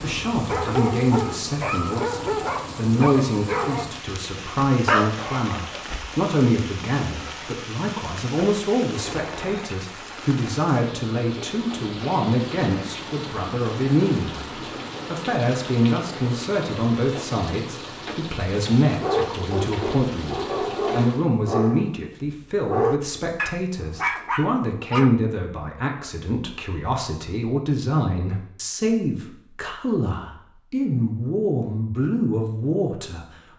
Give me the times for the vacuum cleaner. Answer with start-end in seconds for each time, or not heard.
not heard.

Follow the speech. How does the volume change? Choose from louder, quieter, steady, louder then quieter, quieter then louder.
steady.